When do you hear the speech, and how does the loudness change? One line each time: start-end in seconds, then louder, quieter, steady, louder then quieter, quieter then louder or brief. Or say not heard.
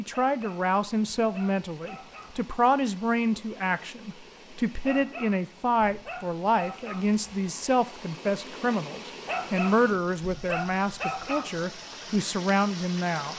0.0-13.3 steady.